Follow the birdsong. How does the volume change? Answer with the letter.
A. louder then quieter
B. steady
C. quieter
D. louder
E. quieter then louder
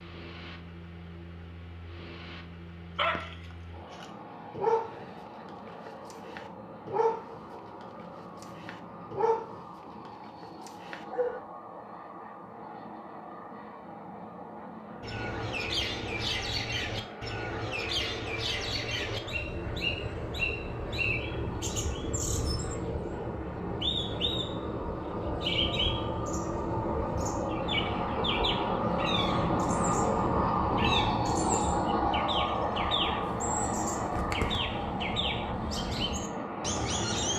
B.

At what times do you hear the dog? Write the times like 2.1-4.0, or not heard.
3.0-11.4.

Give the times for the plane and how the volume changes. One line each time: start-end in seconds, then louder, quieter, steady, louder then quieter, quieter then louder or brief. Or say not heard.
0.0-37.3 louder.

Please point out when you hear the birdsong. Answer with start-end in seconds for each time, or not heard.
15.0-37.3.